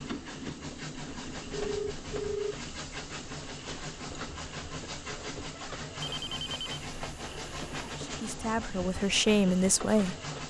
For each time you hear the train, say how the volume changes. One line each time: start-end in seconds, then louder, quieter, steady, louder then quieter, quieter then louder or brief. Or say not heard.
0.0-10.4 steady.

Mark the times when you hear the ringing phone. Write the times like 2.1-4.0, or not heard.
1.5-2.5, 6.0-8.0.